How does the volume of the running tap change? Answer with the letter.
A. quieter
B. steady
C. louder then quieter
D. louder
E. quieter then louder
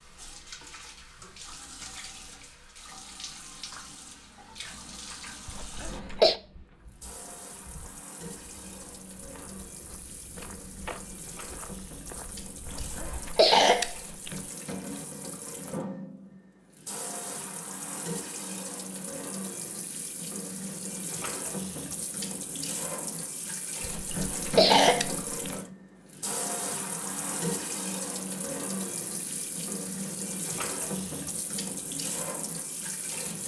D.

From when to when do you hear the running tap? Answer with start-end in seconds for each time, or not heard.
0.0-33.4.